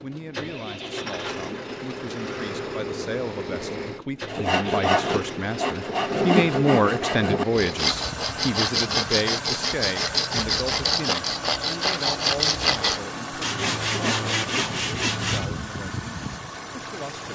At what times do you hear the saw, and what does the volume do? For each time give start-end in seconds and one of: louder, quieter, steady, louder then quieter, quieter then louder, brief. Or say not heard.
4.2-15.5 steady.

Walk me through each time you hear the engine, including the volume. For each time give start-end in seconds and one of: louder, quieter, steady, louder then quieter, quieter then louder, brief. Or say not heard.
0.0-17.3 steady.